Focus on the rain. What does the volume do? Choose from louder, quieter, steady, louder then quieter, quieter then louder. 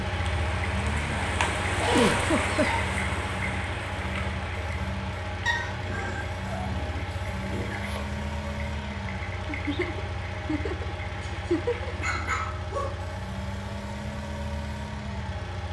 quieter.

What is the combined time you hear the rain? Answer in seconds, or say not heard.
12 s.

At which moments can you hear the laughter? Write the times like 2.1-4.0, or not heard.
1.9-2.9, 9.4-11.9.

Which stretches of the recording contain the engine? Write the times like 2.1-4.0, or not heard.
0.0-15.6.